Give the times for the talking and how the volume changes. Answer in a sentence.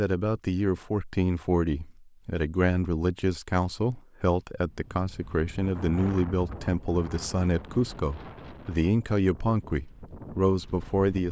The talking can be heard from 0.0 to 11.2 s, at a steady volume.